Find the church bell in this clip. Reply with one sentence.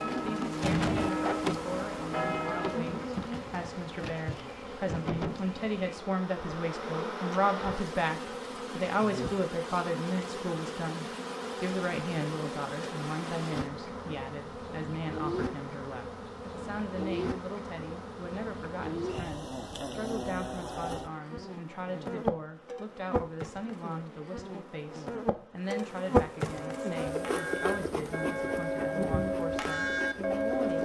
The church bell can be heard from 0.0 to 3.0 s and from 26.4 to 30.8 s.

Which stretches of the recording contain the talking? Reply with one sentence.
The talking can be heard from 0.1 to 30.8 s.